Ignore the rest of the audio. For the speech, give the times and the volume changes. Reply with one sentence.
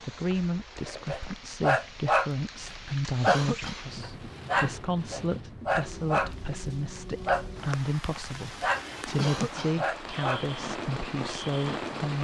The speech can be heard from 0.0 to 12.1 s, at a steady volume.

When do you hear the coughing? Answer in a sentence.
The coughing can be heard from 3.2 to 3.9 s and from 9.2 to 9.8 s.